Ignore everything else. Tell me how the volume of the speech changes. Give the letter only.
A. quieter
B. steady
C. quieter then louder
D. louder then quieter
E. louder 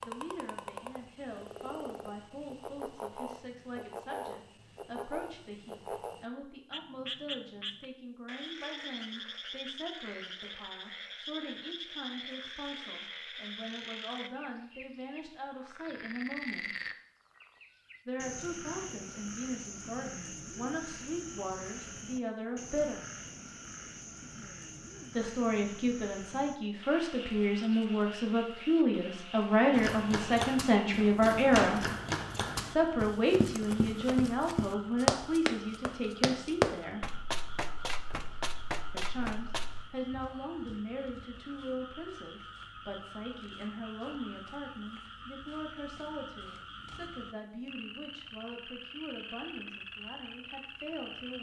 D.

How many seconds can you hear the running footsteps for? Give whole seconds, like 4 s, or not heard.
10 s.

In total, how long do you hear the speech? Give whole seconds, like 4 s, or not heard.
45 s.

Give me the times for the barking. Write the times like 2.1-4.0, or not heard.
not heard.